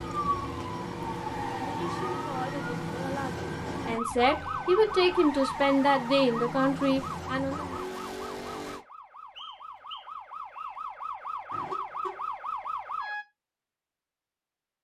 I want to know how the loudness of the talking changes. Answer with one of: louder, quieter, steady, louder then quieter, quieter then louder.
louder.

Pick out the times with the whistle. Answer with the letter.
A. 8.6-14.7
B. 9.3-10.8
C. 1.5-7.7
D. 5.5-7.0
B.